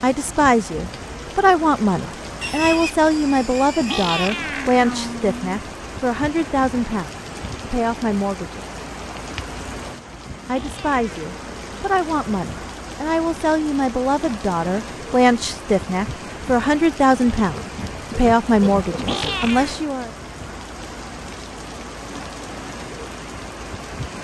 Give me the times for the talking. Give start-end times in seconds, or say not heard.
0.0-8.8, 10.4-20.1.